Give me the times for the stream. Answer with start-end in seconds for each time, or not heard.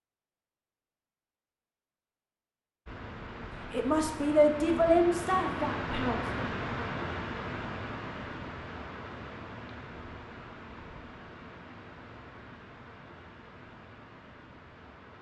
2.9-15.1.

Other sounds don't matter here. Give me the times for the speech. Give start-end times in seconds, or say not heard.
3.7-6.5.